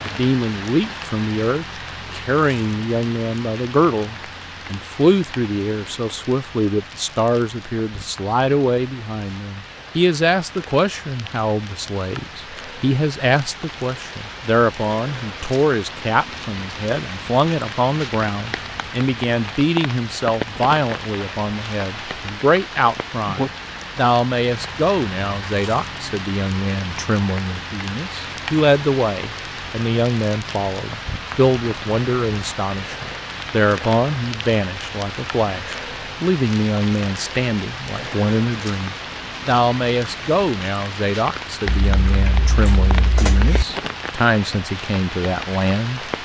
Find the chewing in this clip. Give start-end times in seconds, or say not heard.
41.6-43.6.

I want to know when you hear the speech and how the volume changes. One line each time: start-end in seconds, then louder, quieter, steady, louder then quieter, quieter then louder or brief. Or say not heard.
0.1-46.1 steady.